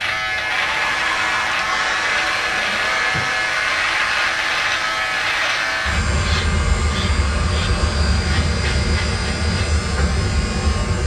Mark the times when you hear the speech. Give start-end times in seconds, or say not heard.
not heard.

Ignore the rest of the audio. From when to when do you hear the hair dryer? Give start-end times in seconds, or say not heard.
0.2-11.0.